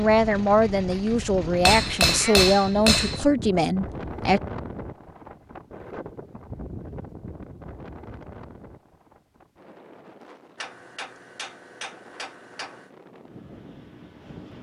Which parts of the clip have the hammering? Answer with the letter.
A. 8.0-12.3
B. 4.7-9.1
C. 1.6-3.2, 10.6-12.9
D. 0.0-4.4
C.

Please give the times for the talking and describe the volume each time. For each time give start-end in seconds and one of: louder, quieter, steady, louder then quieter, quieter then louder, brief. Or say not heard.
0.0-4.4 steady.